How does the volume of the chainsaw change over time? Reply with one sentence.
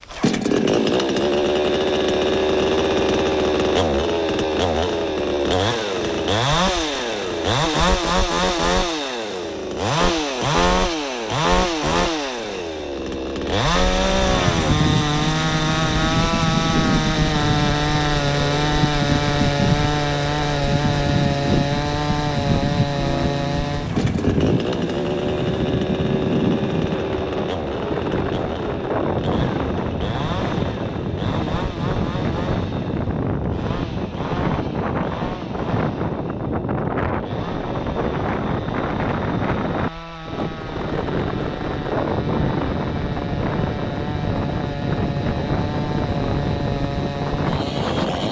The loudness of the chainsaw goes down.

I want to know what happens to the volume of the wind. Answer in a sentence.
The volume of the wind stays about the same.